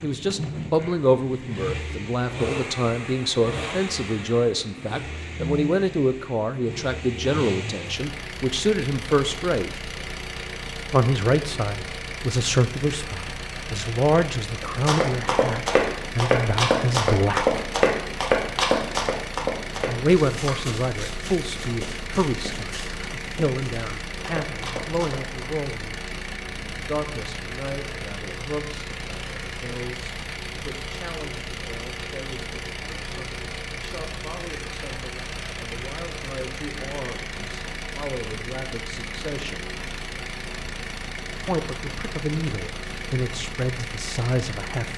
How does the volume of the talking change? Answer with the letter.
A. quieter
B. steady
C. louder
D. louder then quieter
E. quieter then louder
E.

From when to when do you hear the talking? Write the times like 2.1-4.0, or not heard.
0.0-9.7, 10.9-17.6, 19.9-26.0, 26.8-39.7, 41.5-44.9.